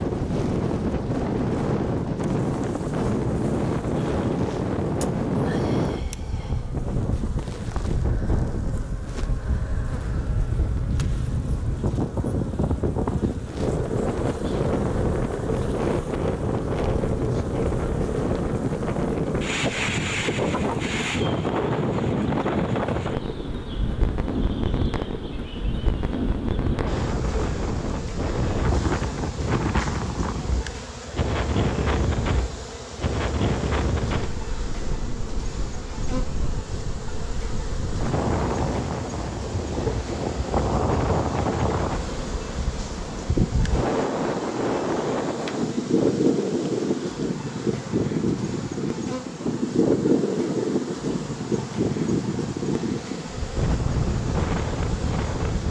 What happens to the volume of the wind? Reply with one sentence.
The volume of the wind stays about the same.